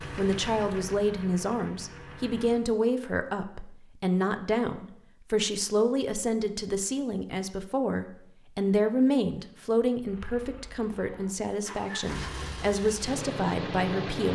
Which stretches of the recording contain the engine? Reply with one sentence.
You can hear the engine from 0.0 to 2.6 s and from 10.0 to 14.3 s.